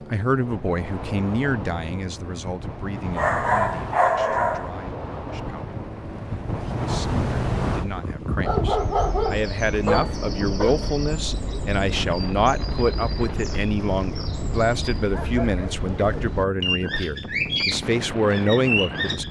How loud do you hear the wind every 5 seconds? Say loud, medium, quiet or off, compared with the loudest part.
medium, loud, medium, medium.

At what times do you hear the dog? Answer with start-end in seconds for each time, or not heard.
3.1-4.8, 8.4-10.8, 15.1-16.2.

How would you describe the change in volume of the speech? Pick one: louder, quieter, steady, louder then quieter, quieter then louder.
quieter then louder.